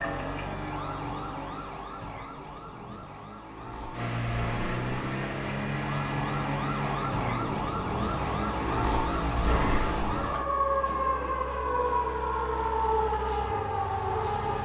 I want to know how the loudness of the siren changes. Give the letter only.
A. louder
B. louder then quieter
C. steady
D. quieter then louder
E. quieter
A.